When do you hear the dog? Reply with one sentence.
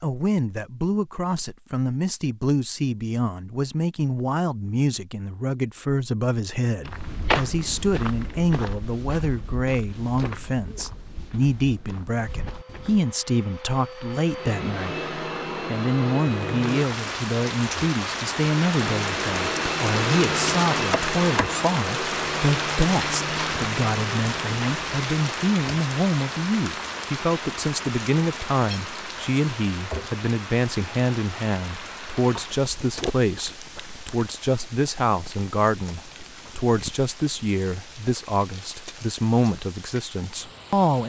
The dog can't be heard in this clip.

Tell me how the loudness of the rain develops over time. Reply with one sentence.
The volume of the rain goes down.